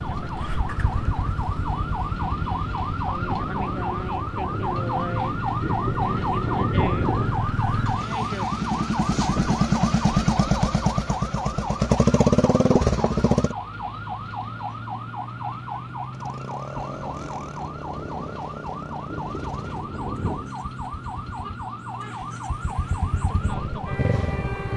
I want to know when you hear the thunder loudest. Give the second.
7 s.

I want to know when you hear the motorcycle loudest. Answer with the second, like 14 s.
12 s.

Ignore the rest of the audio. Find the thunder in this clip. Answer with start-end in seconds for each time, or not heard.
3.2-7.5, 16.8-20.6.